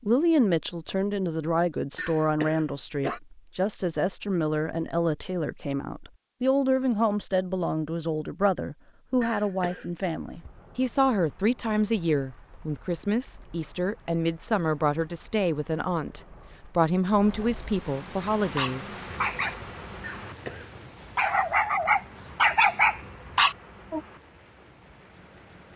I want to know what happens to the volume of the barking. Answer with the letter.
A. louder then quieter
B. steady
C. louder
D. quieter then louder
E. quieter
D.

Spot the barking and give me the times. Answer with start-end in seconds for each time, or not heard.
18.6-24.0.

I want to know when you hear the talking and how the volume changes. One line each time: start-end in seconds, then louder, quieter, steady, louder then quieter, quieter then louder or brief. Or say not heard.
0.0-18.9 steady.